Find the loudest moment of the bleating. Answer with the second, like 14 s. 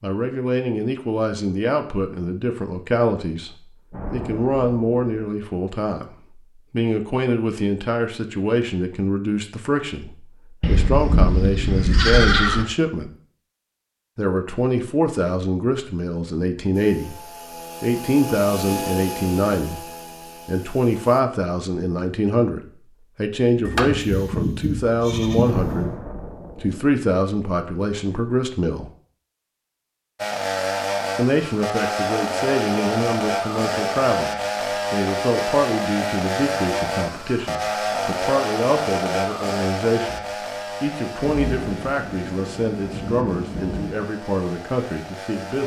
12 s.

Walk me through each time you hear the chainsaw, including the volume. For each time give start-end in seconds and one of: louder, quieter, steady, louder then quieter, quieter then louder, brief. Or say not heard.
16.7-21.2 louder then quieter
30.1-45.6 quieter.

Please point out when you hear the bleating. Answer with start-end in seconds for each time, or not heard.
10.6-12.7, 23.6-26.0.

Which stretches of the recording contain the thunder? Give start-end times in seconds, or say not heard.
3.9-5.0, 25.4-26.8, 41.2-44.0.